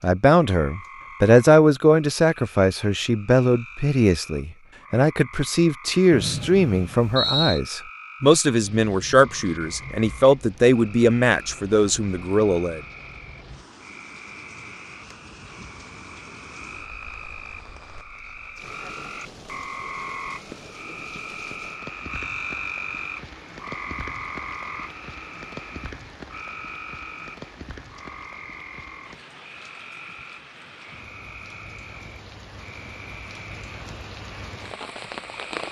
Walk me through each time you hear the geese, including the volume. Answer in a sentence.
The geese can't be heard in this clip.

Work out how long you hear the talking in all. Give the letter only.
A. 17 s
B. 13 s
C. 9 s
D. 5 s
B.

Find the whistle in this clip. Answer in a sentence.
The whistle can be heard from 6.1 to 7.6 s.